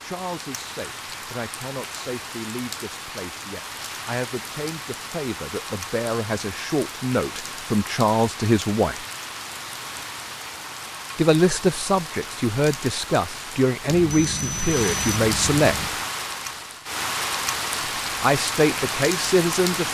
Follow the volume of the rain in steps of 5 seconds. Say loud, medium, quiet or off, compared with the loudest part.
medium, medium, medium, loud.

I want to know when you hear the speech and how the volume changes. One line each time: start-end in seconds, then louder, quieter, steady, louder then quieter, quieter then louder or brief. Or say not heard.
0.0-9.0 louder
11.2-15.9 steady
18.2-19.8 brief.